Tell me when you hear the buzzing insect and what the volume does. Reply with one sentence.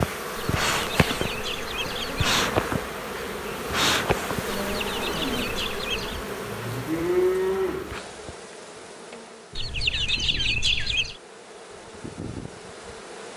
The buzzing insect can be heard from 0.0 to 13.3 s, getting quieter.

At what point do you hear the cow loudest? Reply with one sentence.
The volume of the cow peaks at 7 seconds.